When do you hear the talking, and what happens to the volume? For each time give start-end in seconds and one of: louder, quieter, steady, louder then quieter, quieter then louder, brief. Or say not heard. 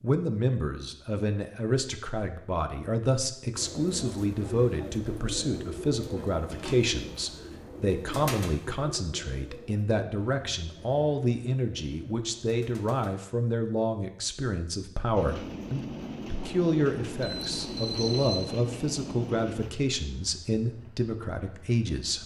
0.0-22.2 steady.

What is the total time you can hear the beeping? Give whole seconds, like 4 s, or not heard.
2 s.